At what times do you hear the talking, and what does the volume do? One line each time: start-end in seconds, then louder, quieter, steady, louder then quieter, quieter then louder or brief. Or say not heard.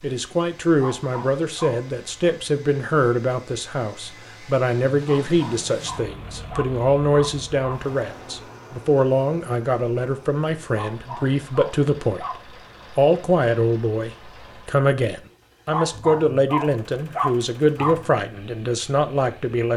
0.0-12.2 steady
12.9-19.7 steady.